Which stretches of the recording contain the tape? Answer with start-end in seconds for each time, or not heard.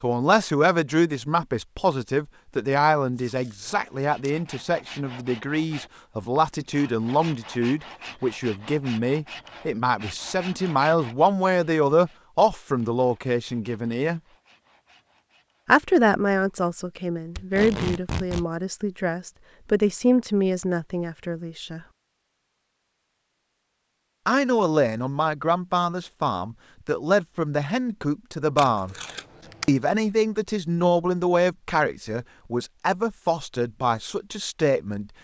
3.1-4.3, 17.4-18.4, 28.6-29.8.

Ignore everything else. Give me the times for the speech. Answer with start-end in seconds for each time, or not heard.
0.0-14.2, 15.7-21.8, 24.2-28.9, 29.6-35.1.